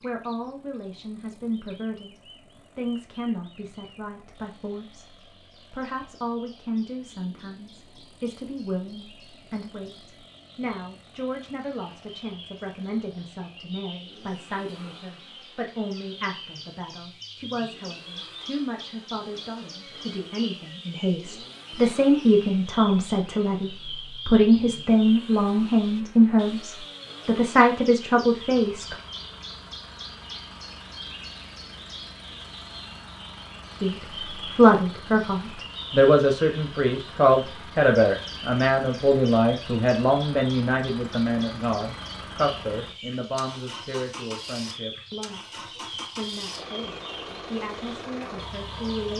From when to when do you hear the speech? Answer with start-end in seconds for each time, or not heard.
0.0-28.9, 33.8-45.5, 46.1-49.1.